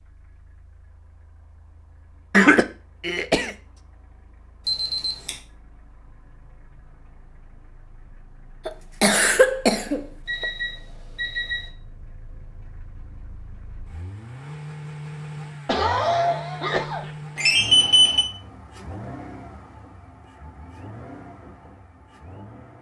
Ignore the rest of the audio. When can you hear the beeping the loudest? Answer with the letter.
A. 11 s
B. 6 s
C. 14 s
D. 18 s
D.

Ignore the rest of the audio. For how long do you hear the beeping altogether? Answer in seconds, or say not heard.
3 s.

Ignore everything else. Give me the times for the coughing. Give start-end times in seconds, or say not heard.
2.3-3.5, 8.7-10.4, 15.7-17.1.